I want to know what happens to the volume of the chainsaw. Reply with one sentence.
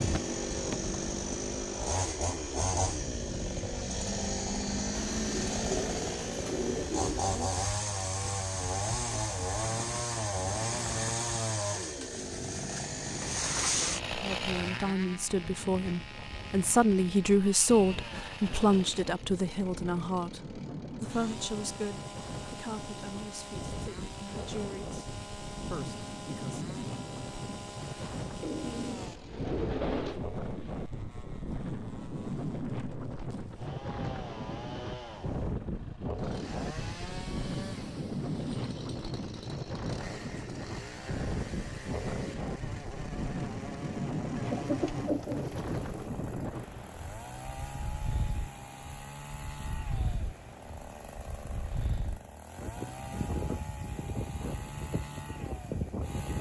The loudness of the chainsaw goes down.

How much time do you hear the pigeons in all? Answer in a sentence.
You can hear the pigeons for 6 seconds altogether.